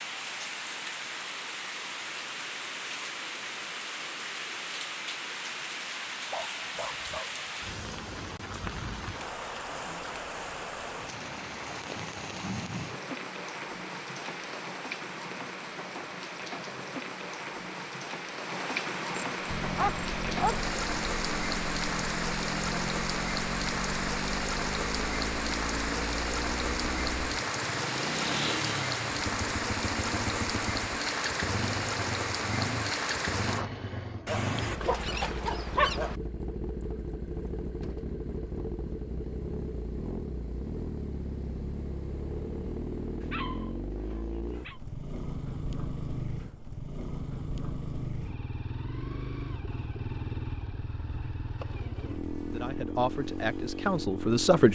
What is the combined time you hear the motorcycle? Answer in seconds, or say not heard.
35 s.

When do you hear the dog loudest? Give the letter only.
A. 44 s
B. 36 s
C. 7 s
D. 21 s
B.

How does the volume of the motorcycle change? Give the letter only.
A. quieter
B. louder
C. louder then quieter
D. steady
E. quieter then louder
D.